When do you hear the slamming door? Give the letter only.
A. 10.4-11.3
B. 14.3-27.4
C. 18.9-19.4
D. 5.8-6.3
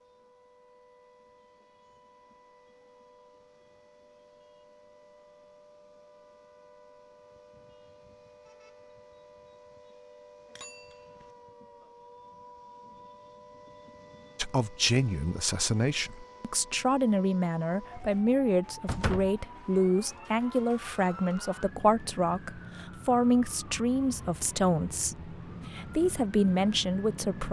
C.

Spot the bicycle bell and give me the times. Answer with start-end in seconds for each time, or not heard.
10.4-11.3.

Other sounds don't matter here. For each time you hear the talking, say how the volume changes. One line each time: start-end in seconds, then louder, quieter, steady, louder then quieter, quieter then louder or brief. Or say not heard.
14.3-27.4 steady.